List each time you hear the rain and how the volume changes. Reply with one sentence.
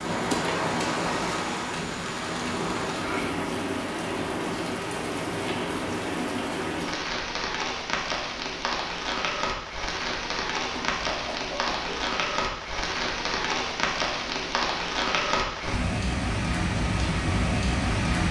You can hear the rain from 0.0 to 18.2 s, at a steady volume.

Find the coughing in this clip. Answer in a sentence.
You can hear the coughing from 10.7 to 12.1 s.